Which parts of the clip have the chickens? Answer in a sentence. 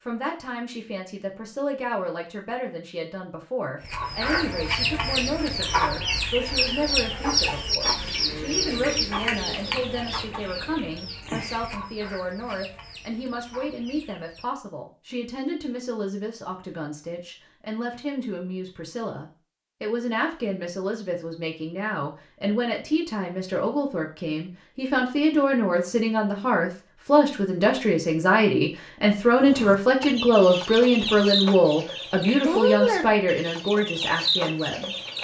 You can hear the chickens from 3.8 to 14.6 s and from 29.4 to 35.1 s.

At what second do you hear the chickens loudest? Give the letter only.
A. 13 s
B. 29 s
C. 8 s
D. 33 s
D.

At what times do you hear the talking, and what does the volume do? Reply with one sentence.
The talking can be heard from 0.0 to 34.9 s, getting louder.